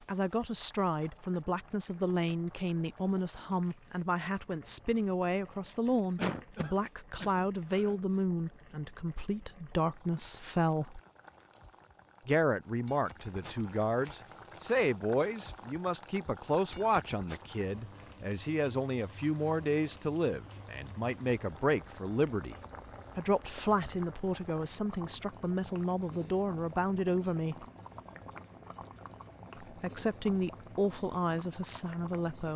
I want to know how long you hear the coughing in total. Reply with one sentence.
The coughing can be heard for 2 seconds in total.